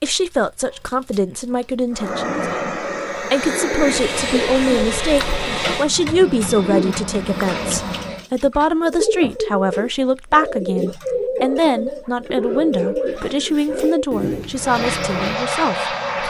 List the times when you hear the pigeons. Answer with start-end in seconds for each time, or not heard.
4.2-15.3.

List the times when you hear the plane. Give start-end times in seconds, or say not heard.
1.9-8.2, 14.5-16.2.